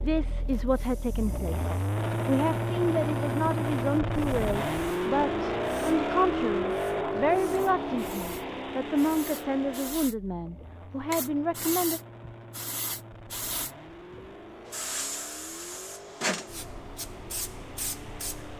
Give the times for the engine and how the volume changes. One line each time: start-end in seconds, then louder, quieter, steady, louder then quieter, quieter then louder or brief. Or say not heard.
0.0-18.5 quieter.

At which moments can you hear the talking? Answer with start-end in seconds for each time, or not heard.
0.0-12.0.